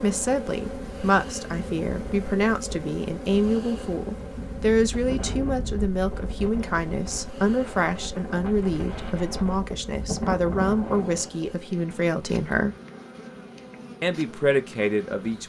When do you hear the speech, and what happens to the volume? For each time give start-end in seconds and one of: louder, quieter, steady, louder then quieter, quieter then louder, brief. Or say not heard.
0.0-12.8 steady
14.0-15.4 brief.